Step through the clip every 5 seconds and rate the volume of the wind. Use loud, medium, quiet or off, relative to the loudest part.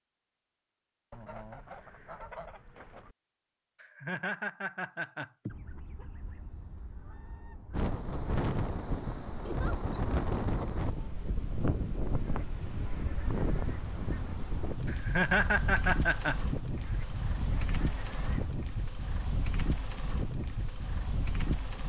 off, loud, loud, loud, loud.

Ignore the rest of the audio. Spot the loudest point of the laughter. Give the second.
15 s.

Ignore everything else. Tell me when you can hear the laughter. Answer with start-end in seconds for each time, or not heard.
3.8-5.5, 9.4-10.1, 14.8-16.6.